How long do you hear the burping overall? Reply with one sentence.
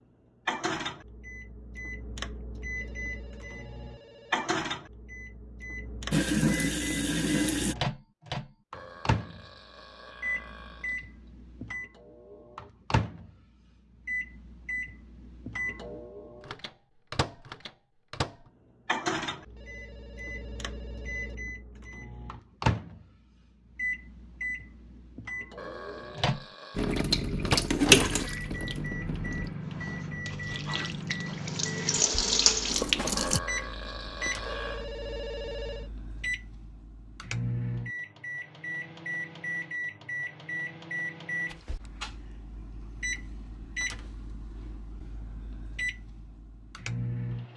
You can hear the burping for 6 seconds altogether.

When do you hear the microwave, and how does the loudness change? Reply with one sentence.
The microwave can be heard from 0.5 to 47.5 s, at a steady volume.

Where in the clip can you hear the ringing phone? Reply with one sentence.
You can hear the ringing phone from 2.5 to 4.5 s, from 19.4 to 21.4 s and from 34.2 to 35.9 s.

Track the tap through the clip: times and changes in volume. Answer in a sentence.
The tap can be heard briefly from 6.1 to 7.8 s; and from 26.8 to 33.4 s, getting quieter then louder.